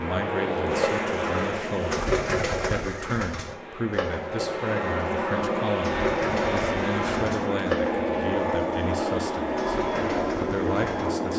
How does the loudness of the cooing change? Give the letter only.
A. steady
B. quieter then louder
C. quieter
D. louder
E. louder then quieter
C.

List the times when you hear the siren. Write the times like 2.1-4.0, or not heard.
not heard.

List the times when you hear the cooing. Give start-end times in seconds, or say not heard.
0.7-11.1.